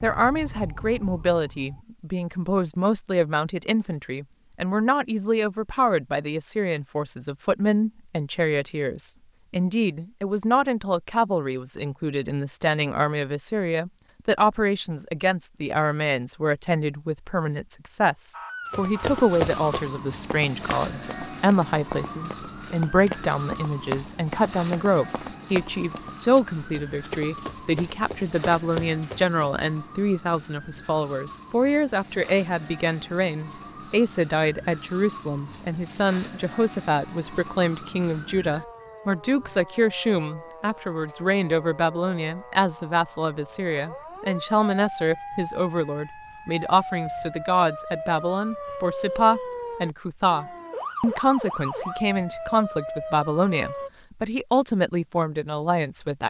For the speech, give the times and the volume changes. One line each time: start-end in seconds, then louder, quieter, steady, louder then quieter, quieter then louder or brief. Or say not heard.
0.0-56.2 steady.